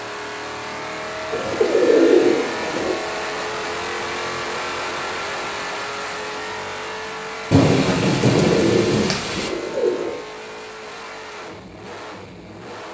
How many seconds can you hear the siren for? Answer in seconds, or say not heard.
not heard.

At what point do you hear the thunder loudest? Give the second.
8 s.